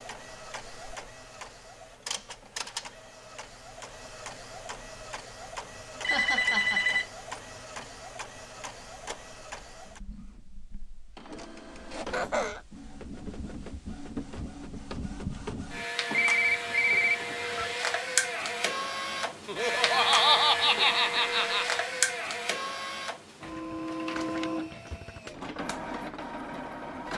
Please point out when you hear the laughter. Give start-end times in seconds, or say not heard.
6.0-7.0, 11.9-12.6, 19.4-21.8.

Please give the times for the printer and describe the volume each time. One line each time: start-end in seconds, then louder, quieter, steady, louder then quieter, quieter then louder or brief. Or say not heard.
0.0-27.1 louder.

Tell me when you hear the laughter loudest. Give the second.
20 s.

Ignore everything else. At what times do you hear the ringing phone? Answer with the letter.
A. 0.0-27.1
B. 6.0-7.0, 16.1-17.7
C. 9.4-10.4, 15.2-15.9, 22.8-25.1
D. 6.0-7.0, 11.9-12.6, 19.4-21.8
B.